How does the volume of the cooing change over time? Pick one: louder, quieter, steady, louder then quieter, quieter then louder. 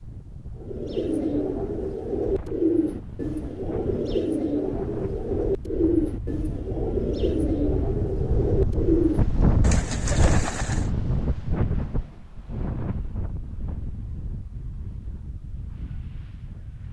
steady.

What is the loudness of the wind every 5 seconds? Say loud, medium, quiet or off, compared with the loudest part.
medium, loud, loud, quiet.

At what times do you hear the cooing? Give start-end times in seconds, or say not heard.
0.6-10.9.